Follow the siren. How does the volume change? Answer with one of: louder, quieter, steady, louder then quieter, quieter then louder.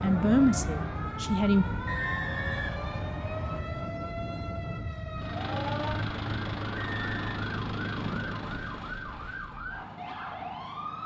steady.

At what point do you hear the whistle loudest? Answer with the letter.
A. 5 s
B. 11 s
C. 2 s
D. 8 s
C.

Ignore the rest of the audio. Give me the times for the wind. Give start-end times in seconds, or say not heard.
0.0-6.3.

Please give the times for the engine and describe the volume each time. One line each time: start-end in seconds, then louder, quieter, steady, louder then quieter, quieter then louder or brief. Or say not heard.
5.2-11.0 quieter.